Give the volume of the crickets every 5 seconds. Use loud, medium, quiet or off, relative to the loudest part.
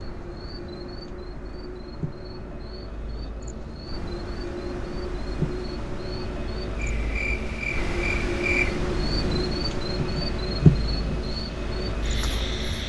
quiet, medium, loud.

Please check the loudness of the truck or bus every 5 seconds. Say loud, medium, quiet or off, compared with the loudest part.
medium, loud, loud.